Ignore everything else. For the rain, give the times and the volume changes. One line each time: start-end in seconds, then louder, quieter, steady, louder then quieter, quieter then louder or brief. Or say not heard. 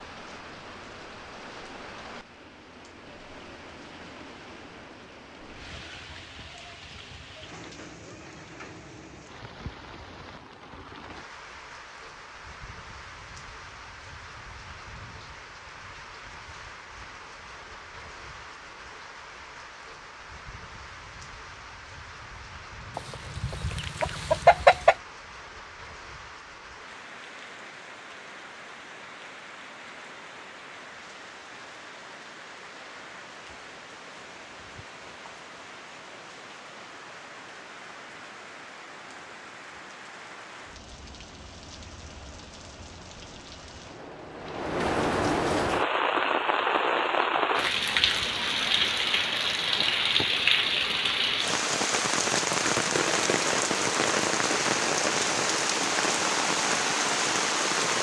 0.0-57.9 louder.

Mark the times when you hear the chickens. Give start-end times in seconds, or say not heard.
22.9-24.9.